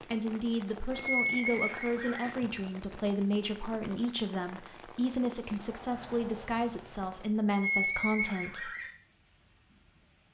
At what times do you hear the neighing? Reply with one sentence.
The neighing can be heard from 0.9 to 2.3 s and from 7.5 to 8.9 s.